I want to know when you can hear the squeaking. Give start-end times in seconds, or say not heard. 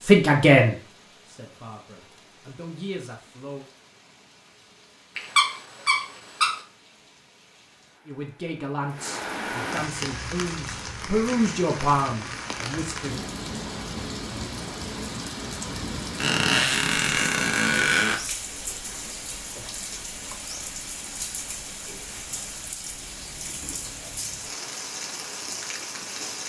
5.2-6.6, 16.1-18.1.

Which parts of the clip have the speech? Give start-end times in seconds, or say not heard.
0.0-3.6, 8.1-13.2.